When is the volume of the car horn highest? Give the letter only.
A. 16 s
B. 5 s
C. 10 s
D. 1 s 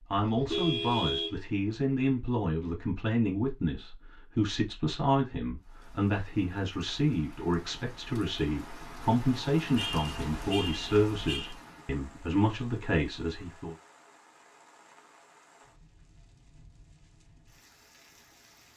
D.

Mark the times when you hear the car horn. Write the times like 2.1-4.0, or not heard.
0.1-1.7, 9.8-11.6.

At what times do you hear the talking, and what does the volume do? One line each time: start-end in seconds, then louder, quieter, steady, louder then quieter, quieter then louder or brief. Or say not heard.
0.1-13.8 steady.